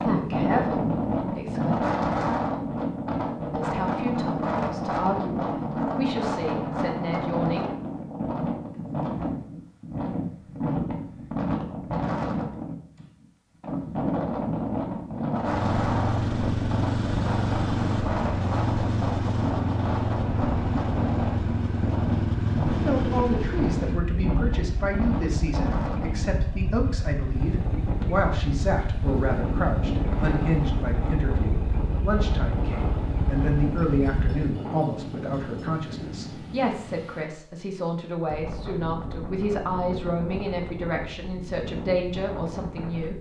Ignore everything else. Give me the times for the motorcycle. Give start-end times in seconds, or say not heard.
15.4-34.4.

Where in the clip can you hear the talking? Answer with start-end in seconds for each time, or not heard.
0.0-1.8, 3.5-7.7, 22.8-43.1.